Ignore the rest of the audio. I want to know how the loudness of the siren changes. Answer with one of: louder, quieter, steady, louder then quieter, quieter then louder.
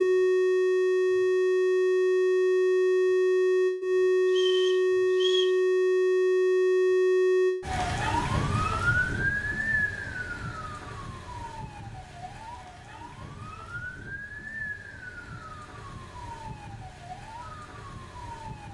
quieter.